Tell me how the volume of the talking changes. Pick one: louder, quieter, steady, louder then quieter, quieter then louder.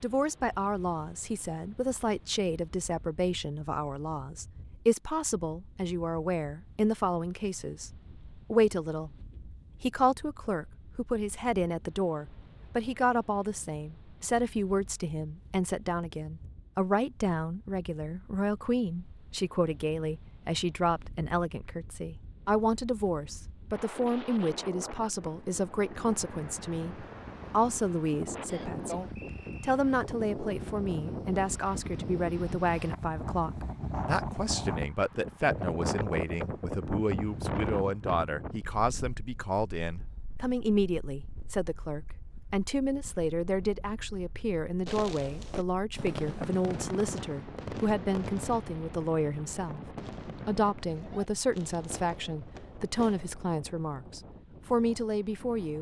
steady.